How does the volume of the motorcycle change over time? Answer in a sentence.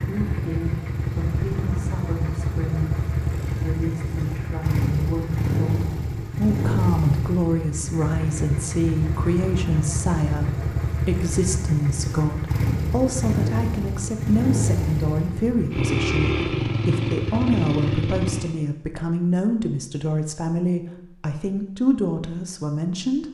The loudness of the motorcycle stays about the same.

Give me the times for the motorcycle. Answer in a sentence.
You can hear the motorcycle from 0.0 to 18.6 s.